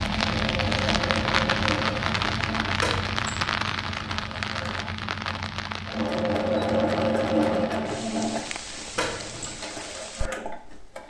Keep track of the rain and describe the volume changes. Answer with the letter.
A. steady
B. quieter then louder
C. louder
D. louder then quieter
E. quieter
E.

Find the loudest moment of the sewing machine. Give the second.
7 s.